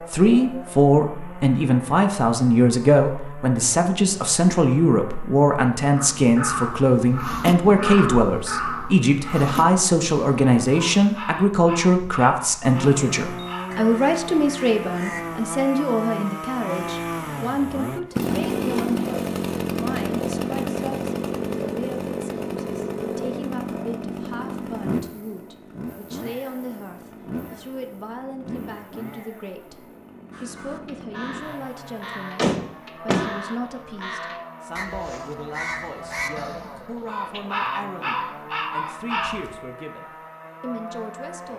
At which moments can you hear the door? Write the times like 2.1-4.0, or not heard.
32.4-33.3.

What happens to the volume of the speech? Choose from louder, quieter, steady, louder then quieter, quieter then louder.
quieter.